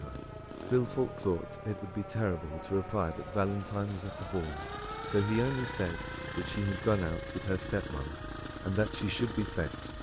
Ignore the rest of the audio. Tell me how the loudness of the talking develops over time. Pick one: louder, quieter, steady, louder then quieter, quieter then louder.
steady.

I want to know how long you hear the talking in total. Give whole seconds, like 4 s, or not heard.
10 s.